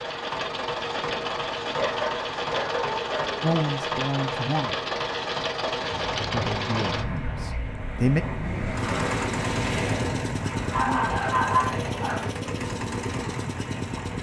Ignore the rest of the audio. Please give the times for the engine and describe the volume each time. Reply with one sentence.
You can hear the engine from 0.0 to 14.1 s, at a steady volume.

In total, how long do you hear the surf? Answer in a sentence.
The surf can be heard for 8 seconds in total.